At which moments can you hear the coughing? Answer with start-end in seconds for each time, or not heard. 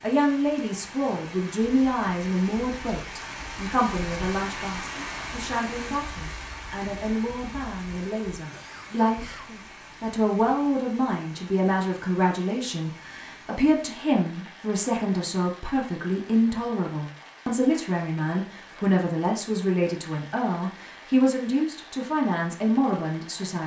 8.3-9.7.